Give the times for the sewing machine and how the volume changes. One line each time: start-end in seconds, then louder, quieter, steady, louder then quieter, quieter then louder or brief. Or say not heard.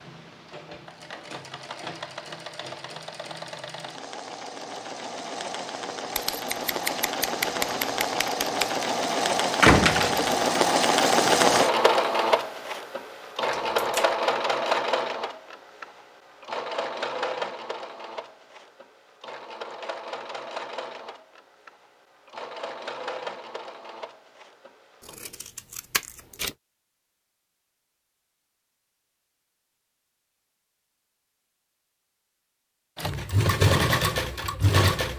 0.0-25.1 louder then quieter
33.0-35.1 brief.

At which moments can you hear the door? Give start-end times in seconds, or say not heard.
9.6-10.4.